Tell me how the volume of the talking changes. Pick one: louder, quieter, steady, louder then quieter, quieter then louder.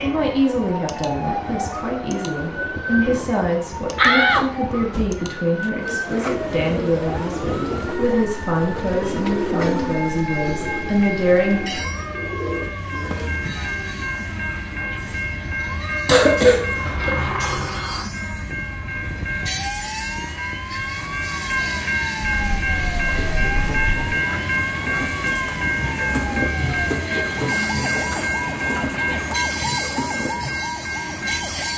steady.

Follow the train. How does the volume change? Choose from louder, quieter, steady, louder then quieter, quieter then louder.
louder.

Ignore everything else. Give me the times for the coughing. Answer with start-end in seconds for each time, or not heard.
16.1-17.1.